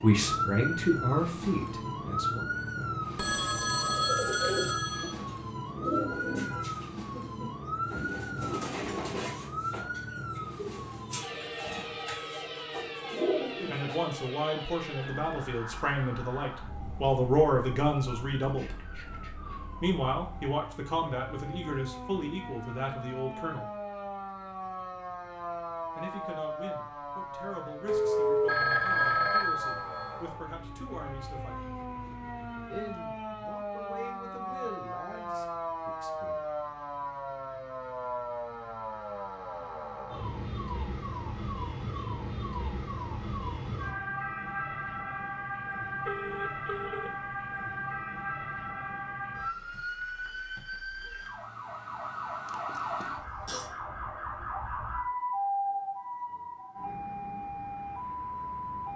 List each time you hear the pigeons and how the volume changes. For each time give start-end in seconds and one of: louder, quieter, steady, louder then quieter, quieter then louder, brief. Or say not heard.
3.4-14.0 quieter then louder.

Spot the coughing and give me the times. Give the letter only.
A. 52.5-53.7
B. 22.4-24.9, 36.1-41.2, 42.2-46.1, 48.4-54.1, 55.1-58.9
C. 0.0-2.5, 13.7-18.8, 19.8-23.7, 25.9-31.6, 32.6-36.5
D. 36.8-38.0
A.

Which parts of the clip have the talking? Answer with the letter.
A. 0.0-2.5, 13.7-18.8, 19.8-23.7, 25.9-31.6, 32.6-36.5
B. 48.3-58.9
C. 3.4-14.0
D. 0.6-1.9
A.